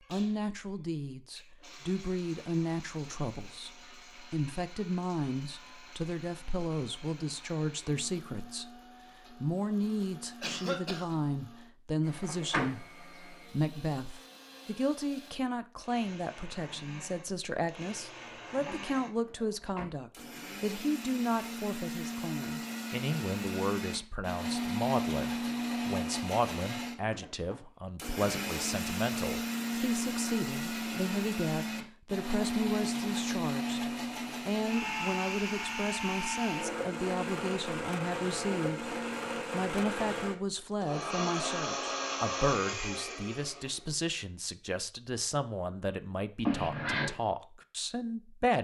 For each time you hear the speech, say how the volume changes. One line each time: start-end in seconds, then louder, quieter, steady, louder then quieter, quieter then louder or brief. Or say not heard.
0.1-48.5 steady.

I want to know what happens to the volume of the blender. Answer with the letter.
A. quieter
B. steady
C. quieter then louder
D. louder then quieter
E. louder
E.